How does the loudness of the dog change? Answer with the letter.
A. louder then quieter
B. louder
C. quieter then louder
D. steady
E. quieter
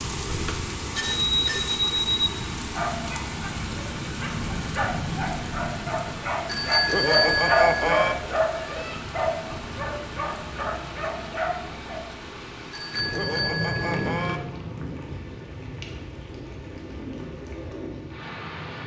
A.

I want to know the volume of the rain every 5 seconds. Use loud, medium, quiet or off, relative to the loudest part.
loud, loud, loud, medium.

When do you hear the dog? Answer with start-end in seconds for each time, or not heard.
2.5-12.1.